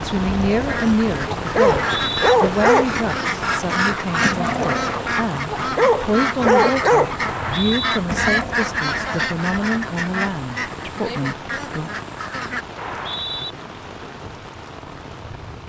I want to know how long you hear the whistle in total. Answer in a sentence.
The whistle can be heard for 2 seconds in total.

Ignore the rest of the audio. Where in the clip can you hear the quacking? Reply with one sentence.
You can hear the quacking from 0.7 to 12.7 s.